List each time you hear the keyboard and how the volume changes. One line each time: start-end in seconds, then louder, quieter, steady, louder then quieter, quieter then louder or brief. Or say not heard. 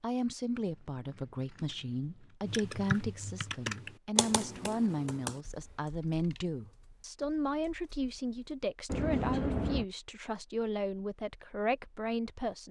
2.5-8.6 quieter.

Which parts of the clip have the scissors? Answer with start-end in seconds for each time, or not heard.
0.6-2.4, 6.0-6.5, 8.8-9.8.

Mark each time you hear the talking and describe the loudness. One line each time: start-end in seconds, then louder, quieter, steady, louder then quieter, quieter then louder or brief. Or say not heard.
0.0-12.6 steady.